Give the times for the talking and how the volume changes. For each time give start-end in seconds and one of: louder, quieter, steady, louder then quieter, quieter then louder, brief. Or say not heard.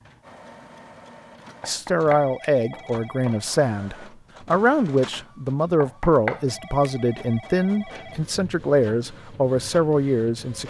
1.6-10.6 steady.